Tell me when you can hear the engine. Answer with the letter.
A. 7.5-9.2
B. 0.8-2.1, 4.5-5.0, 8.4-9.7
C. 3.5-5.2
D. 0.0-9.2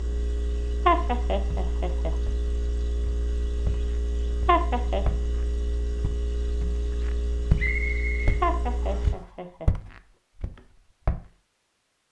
D.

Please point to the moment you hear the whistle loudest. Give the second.
8 s.